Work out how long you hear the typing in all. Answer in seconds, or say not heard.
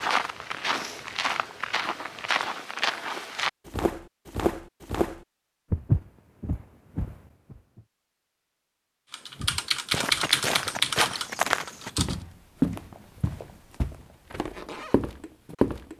3 s.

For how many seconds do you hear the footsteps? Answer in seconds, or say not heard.
14 s.